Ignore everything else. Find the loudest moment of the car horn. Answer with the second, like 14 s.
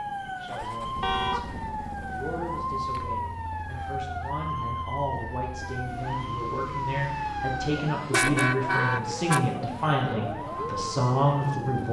8 s.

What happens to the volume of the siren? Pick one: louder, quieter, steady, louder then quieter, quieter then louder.
steady.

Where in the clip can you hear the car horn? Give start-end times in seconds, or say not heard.
1.0-1.7, 7.7-9.6.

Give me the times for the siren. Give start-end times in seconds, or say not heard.
0.0-11.8.